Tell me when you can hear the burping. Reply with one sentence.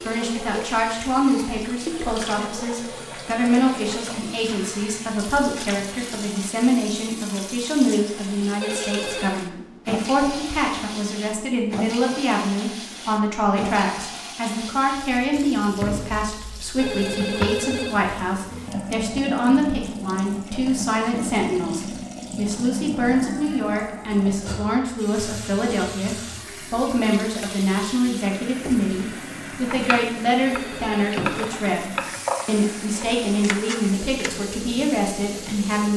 You can't hear the burping here.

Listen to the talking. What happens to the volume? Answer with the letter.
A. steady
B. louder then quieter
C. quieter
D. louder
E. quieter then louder
A.